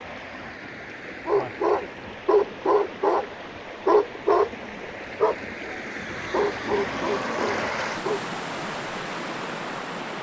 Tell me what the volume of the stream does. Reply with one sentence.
The volume of the stream goes up.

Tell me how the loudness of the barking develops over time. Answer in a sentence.
The volume of the barking goes down.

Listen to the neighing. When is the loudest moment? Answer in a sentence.
The loudest moment of the neighing is at 7 seconds.